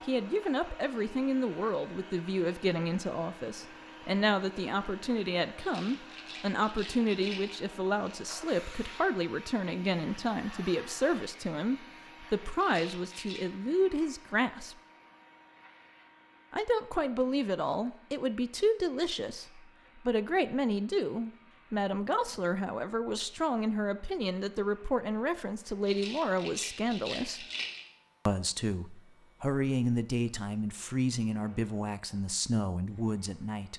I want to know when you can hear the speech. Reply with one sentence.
The speech can be heard from 0.1 to 14.8 s, from 16.5 to 27.4 s and from 28.2 to 33.7 s.